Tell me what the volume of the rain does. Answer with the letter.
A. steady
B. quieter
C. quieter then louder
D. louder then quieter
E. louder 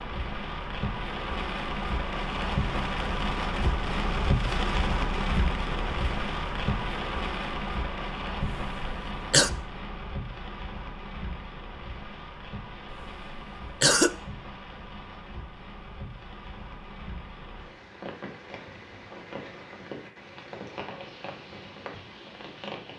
B.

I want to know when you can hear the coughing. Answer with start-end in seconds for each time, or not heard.
8.4-9.5, 12.9-14.1.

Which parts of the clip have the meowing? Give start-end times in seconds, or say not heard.
not heard.